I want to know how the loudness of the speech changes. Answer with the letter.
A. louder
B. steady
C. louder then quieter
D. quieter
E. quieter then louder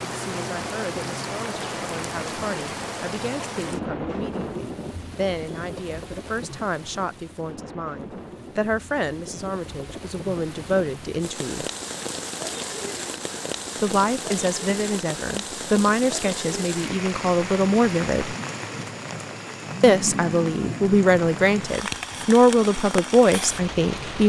A.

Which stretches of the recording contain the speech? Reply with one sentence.
You can hear the speech from 0.1 to 11.7 s, from 13.8 to 18.4 s and from 19.8 to 24.2 s.